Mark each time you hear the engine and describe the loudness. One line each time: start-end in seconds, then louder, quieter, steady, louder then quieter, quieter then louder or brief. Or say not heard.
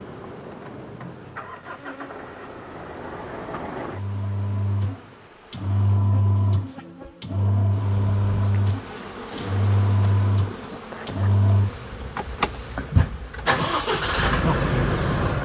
0.0-15.4 louder.